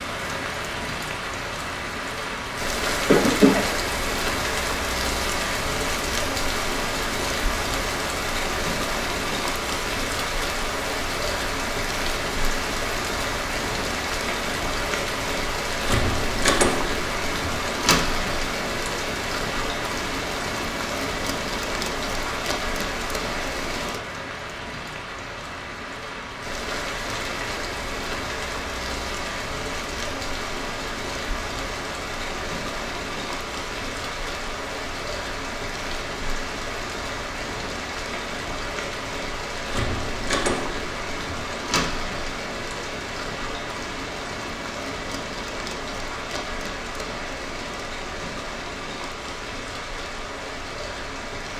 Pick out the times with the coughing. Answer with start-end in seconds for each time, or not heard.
3.0-3.6.